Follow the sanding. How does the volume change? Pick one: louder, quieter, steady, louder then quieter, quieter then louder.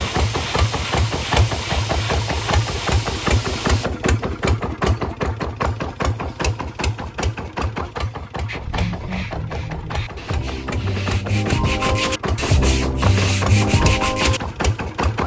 louder.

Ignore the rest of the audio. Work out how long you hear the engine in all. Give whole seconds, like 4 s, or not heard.
15 s.